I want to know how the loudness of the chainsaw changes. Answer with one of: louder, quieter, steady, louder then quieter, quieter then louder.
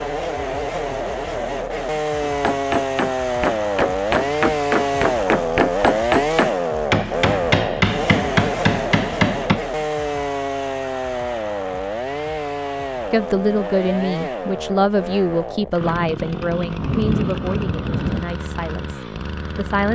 quieter.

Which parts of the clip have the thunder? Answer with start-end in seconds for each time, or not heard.
16.8-18.2.